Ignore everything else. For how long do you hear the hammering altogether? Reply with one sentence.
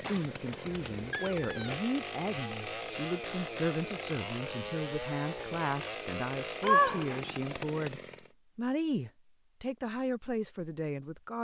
The hammering can't be heard in this clip.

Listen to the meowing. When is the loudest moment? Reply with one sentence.
The volume of the meowing peaks at 7 seconds.